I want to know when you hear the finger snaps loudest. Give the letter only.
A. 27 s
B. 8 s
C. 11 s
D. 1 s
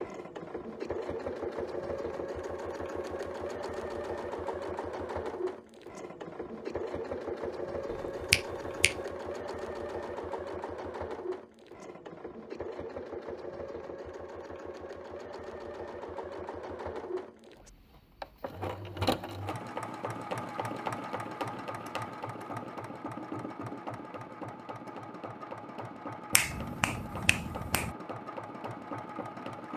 B.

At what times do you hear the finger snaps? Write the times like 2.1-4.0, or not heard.
7.9-8.9, 26.3-27.9.